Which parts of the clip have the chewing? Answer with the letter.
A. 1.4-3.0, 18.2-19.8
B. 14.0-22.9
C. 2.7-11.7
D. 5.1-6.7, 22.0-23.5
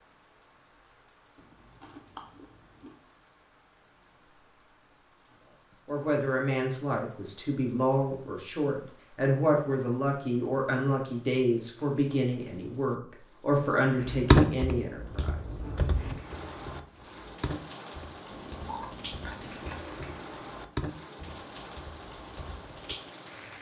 A.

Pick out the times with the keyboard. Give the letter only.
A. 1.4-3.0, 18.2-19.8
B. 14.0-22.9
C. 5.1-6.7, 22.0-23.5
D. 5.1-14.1
B.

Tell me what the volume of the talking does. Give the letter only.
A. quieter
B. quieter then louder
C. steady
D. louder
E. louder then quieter
C.